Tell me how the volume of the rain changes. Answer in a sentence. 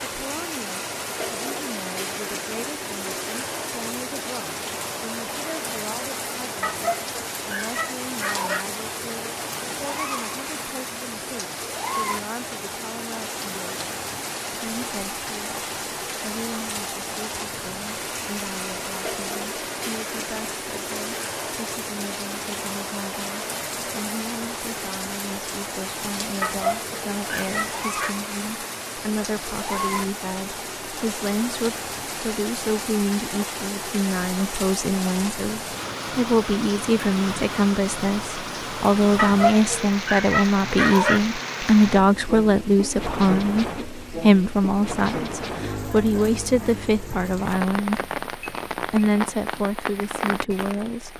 The loudness of the rain stays about the same.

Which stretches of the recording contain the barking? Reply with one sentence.
You can hear the barking from 6.6 to 8.7 s, from 26.4 to 28.1 s and from 39.1 to 41.2 s.